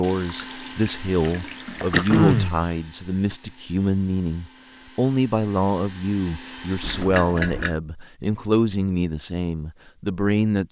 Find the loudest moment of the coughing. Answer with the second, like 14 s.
2 s.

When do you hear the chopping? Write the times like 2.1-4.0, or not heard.
not heard.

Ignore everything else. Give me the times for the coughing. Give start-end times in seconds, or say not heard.
1.9-2.6, 6.8-7.8.